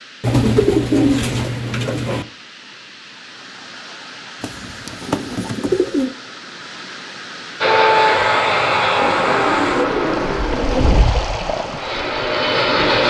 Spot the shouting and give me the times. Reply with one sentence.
The shouting can't be heard in this clip.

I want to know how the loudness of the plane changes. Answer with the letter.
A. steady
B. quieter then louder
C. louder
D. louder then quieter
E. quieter
B.